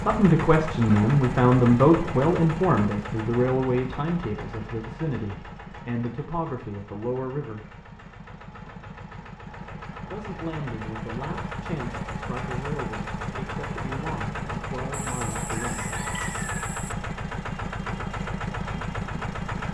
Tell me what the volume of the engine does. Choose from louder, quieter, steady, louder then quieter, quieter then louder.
quieter then louder.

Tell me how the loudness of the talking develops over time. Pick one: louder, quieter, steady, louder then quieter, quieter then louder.
quieter.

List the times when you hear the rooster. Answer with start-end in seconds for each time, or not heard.
14.9-16.9.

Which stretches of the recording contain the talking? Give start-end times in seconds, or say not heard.
0.0-7.7, 10.1-15.8.